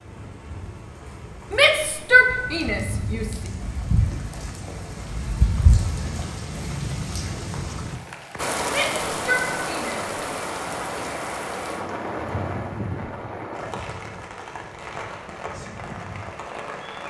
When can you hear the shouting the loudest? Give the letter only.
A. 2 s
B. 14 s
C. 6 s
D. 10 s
A.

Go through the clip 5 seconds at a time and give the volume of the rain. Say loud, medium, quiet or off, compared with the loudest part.
medium, loud, loud, medium.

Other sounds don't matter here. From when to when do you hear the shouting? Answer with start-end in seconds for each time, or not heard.
1.5-3.4, 8.7-10.1.